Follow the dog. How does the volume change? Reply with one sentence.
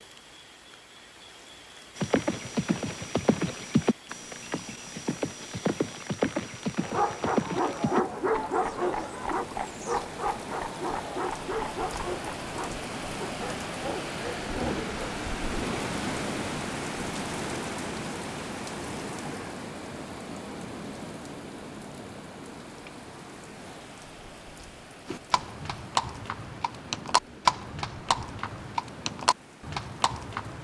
The volume of the dog goes down.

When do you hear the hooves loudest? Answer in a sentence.
The volume of the hooves peaks at 27 seconds.